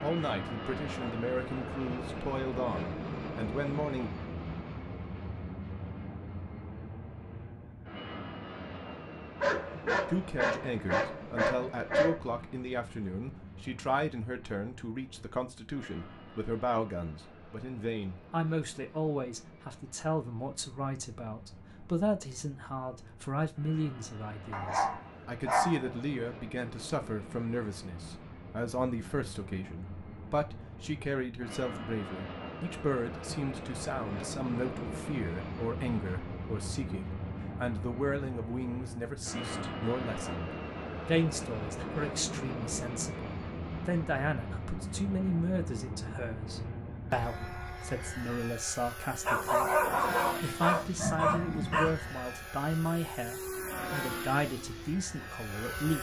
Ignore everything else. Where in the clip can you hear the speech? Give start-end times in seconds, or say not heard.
0.0-4.1, 10.1-55.9.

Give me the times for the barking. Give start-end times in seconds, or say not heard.
9.4-12.2, 24.5-26.1, 49.2-52.0.